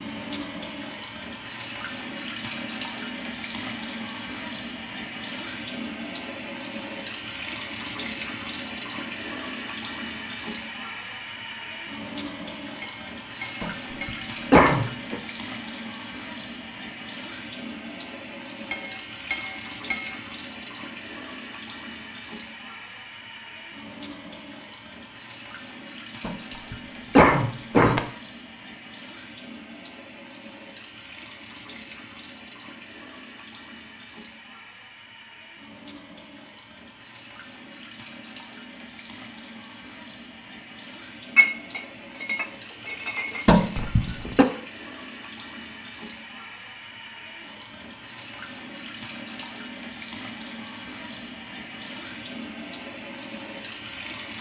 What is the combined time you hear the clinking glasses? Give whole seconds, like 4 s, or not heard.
5 s.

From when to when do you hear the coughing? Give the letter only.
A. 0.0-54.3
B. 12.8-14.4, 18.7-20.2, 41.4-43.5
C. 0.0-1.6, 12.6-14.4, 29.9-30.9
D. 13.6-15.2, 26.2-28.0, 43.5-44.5
D.